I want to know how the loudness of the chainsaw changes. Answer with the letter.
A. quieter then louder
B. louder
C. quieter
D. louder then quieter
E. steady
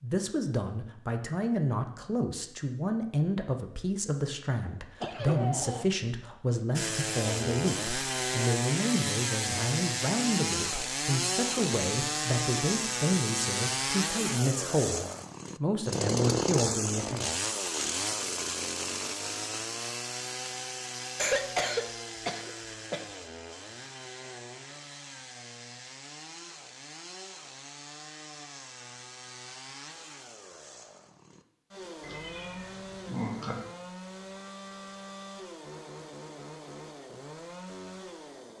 C.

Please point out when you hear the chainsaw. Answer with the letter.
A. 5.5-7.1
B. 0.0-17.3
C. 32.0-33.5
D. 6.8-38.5
D.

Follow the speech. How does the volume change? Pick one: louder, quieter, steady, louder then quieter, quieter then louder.
steady.